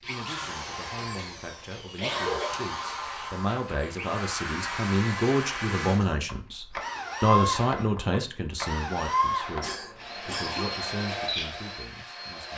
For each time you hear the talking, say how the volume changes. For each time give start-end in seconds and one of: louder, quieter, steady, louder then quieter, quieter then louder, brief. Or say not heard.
0.0-12.5 louder then quieter.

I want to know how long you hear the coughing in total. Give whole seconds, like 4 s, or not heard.
3 s.